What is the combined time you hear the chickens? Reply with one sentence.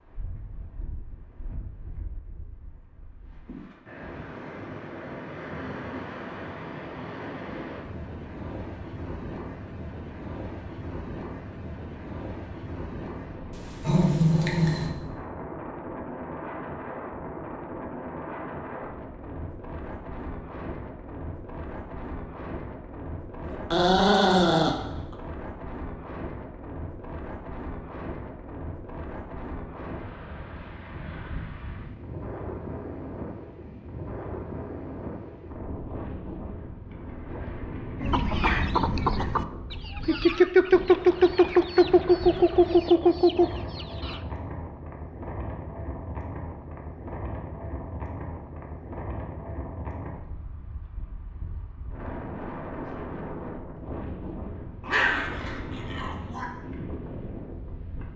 The chickens can be heard for 6 seconds in total.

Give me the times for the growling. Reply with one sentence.
The growling can be heard from 13.5 to 14.9 s, from 23.4 to 25.1 s and from 54.8 to 56.5 s.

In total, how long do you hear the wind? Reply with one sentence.
You can hear the wind for 58 seconds altogether.